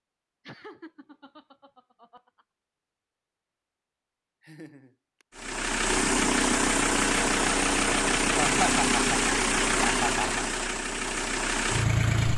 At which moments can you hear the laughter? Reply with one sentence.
The laughter can be heard from 0.5 to 2.5 s, from 4.4 to 5.2 s and from 8.3 to 10.4 s.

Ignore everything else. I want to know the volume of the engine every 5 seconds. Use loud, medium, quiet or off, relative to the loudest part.
off, loud, loud.